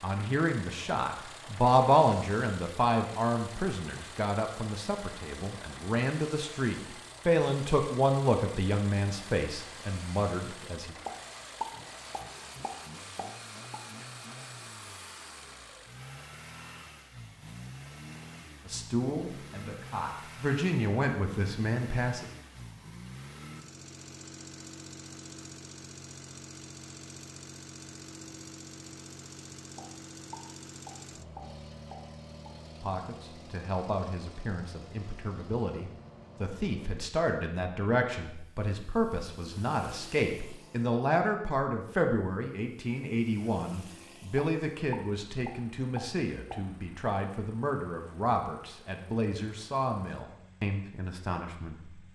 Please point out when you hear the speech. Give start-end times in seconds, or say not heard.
0.0-10.9, 18.6-22.2, 32.8-51.8.